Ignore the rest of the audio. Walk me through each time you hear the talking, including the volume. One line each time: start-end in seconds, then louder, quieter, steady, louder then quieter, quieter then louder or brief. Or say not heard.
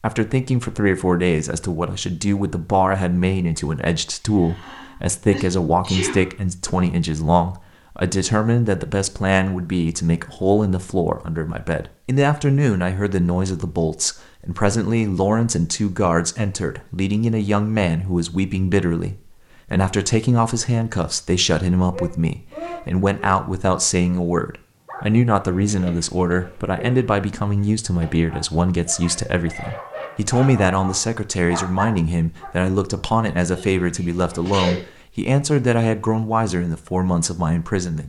0.0-38.0 steady.